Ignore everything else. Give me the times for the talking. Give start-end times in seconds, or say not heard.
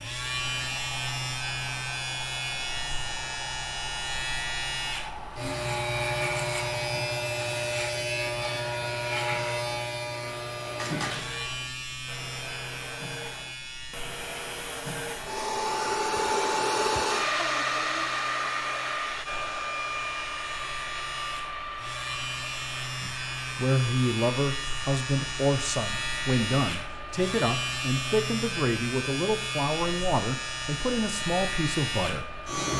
23.0-32.7.